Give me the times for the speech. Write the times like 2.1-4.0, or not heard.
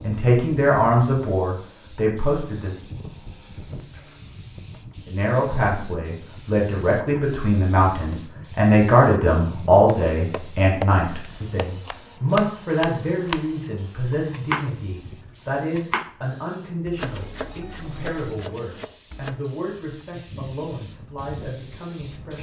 0.0-2.8, 5.0-22.3.